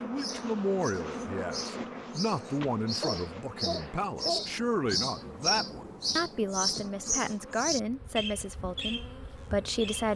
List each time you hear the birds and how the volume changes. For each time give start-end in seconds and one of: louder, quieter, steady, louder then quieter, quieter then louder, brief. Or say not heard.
0.0-10.1 louder then quieter.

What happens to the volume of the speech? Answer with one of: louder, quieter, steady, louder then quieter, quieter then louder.
steady.